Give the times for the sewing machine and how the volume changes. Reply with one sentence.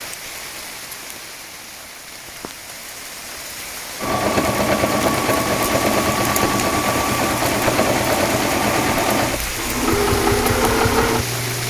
You can hear the sewing machine from 4.0 to 11.6 s, at a steady volume.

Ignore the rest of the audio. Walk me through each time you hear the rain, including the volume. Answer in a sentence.
You can hear the rain from 0.0 to 11.6 s, getting louder.